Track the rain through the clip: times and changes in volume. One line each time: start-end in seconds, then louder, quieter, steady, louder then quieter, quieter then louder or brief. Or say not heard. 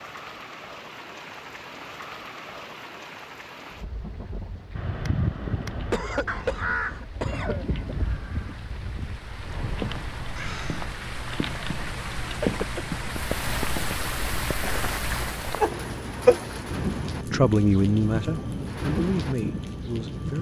0.0-20.3 louder.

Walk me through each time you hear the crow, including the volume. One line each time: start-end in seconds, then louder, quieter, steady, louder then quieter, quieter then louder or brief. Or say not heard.
4.7-10.9 quieter.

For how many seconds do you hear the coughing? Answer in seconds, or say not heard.
2 s.